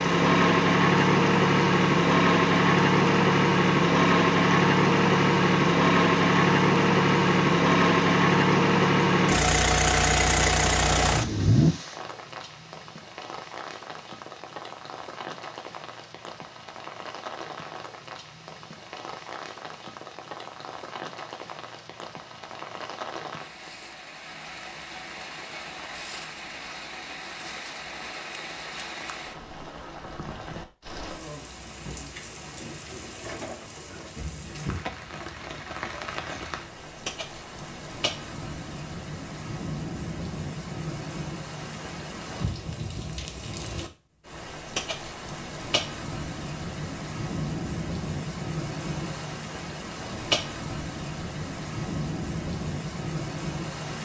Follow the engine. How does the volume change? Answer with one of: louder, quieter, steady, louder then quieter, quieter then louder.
steady.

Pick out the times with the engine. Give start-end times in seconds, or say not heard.
0.0-11.8.